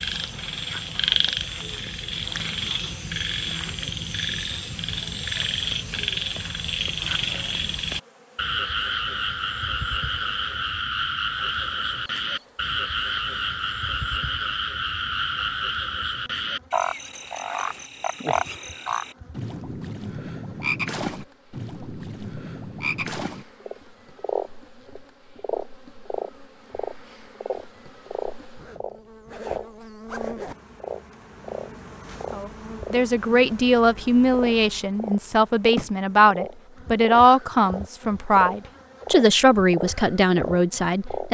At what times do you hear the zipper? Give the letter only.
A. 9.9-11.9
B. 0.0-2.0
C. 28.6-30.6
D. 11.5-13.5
C.